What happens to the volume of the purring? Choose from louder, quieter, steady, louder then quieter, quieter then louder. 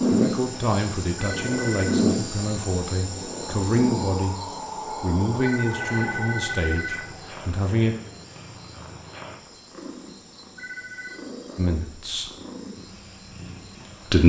quieter.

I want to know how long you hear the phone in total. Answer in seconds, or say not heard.
3 s.